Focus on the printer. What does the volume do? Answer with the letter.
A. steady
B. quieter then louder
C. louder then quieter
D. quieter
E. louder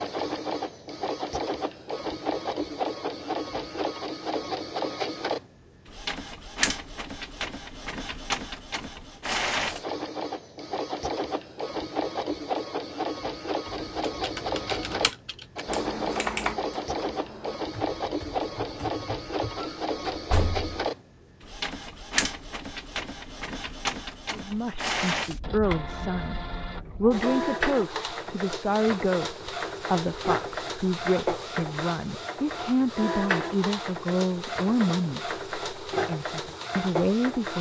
A.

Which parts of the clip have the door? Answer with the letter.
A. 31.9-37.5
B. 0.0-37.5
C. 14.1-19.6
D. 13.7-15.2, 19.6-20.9
D.